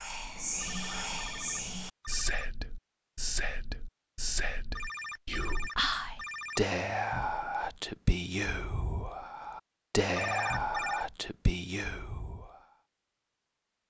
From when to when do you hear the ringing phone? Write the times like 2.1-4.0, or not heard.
0.6-2.5, 4.8-6.7, 10.2-11.1.